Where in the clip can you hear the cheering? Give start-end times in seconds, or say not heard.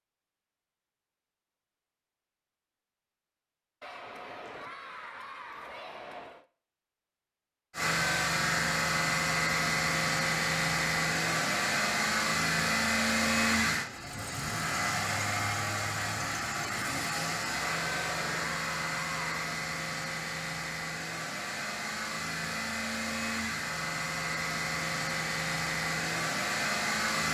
3.8-6.5, 17.6-19.4.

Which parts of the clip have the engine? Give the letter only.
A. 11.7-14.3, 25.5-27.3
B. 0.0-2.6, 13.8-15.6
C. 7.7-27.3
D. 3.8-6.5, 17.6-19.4
C.